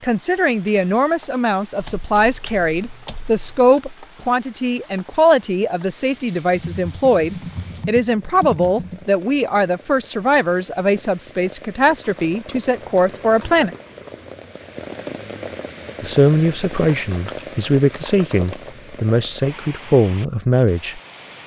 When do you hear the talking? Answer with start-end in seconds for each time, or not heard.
0.0-13.8, 16.0-21.0.